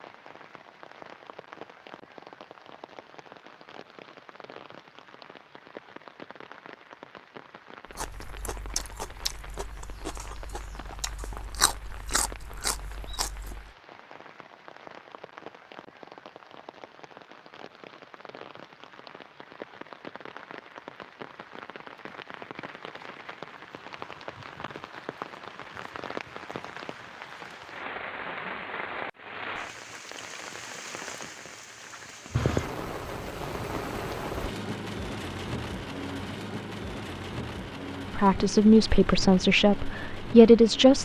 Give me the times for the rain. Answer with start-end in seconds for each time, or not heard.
0.0-41.0.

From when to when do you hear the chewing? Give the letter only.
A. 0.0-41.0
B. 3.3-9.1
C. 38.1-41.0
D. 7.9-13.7
D.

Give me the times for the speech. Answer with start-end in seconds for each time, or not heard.
38.1-41.0.